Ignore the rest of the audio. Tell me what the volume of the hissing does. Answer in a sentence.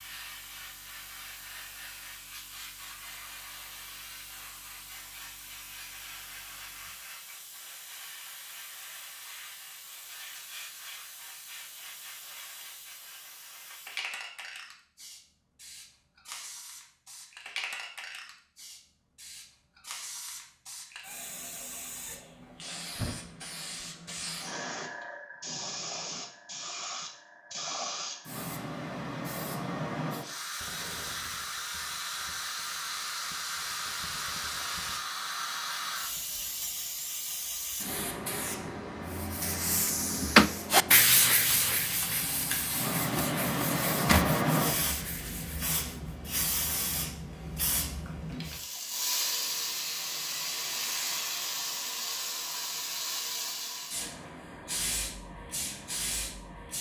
The volume of the hissing goes up.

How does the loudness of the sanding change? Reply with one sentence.
The loudness of the sanding goes down.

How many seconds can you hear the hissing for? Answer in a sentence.
You can hear the hissing for 57 seconds altogether.